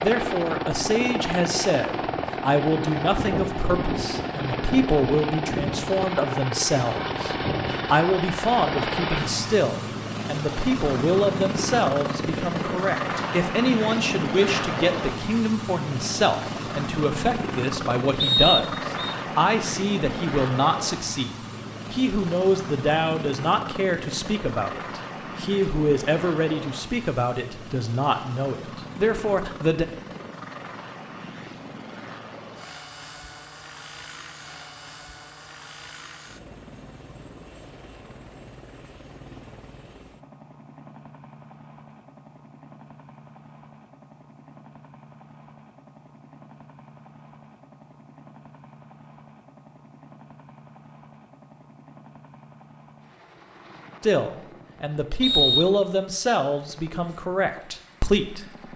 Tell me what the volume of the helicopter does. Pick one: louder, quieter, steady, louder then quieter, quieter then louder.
quieter.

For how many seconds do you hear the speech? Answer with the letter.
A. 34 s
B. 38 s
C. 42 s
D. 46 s
A.